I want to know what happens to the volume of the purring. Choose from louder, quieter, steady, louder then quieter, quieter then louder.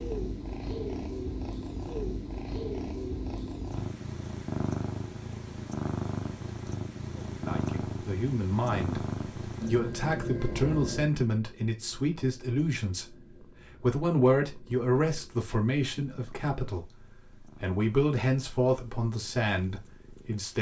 quieter.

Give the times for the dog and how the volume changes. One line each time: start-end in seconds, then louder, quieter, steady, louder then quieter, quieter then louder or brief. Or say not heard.
not heard.